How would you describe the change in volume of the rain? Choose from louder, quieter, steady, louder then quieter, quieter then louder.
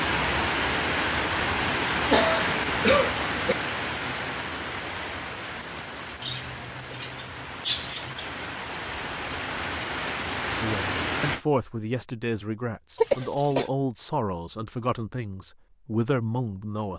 quieter then louder.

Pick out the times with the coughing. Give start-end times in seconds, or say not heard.
2.1-3.5, 6.2-8.2, 12.9-13.7.